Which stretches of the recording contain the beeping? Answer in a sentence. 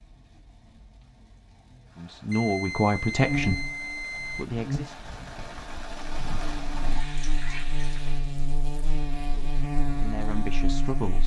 The beeping can be heard from 2.3 to 4.5 s.